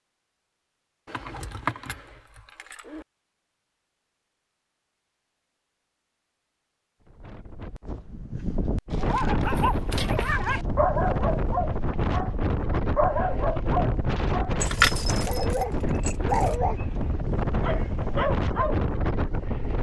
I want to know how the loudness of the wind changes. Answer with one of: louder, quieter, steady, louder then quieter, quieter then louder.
steady.